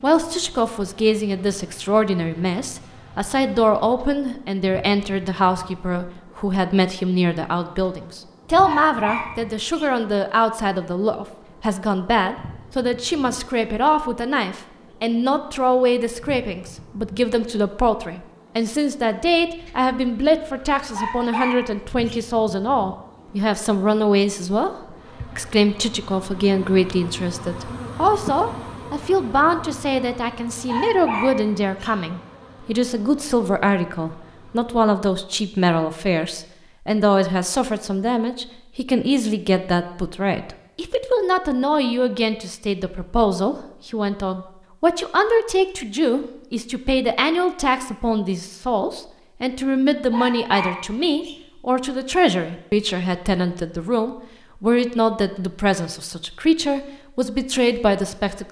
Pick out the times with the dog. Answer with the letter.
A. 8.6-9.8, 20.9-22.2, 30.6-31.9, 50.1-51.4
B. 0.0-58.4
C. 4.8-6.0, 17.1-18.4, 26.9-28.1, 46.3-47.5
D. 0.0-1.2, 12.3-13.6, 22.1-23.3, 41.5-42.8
A.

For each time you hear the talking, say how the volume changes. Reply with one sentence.
You can hear the talking from 0.0 to 58.4 s, at a steady volume.